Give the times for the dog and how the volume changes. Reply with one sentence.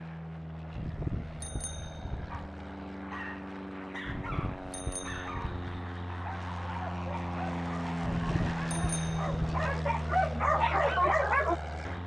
You can hear the dog from 2.3 to 11.6 s, getting louder.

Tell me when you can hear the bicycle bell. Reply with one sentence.
You can hear the bicycle bell from 0.7 to 2.5 s, from 4.0 to 5.8 s and from 8.0 to 9.7 s.